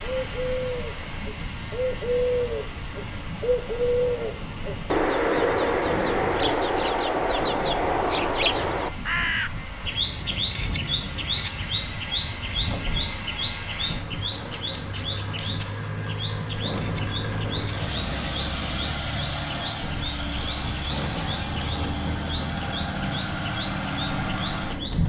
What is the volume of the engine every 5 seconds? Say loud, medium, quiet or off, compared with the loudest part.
medium, medium, medium, loud, loud.